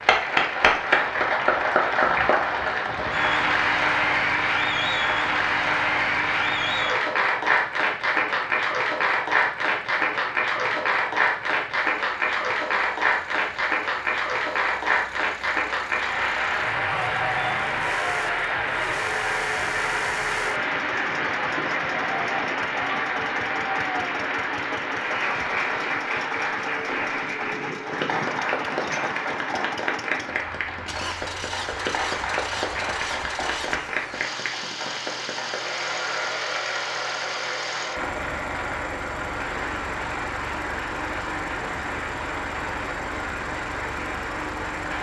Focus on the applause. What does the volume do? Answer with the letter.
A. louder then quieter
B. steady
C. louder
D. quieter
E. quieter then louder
D.